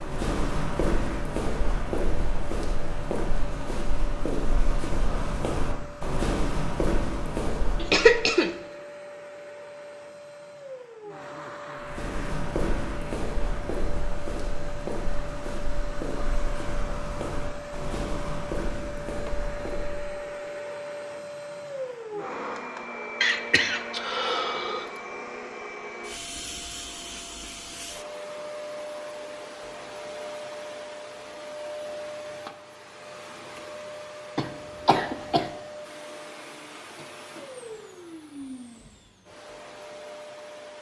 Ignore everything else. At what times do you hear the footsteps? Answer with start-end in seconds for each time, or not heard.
0.0-8.2, 11.8-20.1.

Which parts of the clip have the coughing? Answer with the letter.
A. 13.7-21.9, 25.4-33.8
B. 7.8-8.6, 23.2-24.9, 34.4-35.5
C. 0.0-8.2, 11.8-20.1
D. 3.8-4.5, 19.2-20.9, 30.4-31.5
B.